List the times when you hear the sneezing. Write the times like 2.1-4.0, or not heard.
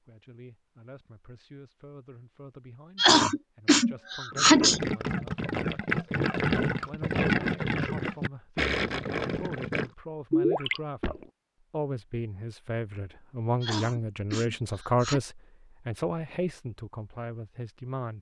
3.0-4.8, 13.6-15.2.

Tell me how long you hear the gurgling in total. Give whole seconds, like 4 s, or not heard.
7 s.